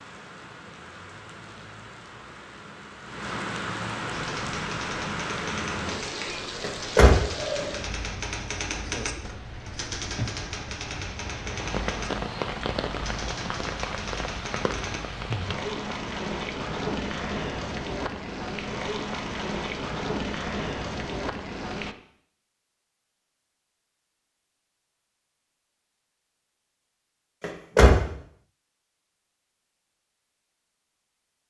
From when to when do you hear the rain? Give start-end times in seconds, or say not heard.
0.0-21.9.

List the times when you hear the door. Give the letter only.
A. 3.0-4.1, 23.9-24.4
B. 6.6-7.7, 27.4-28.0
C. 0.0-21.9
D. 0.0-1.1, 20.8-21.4
B.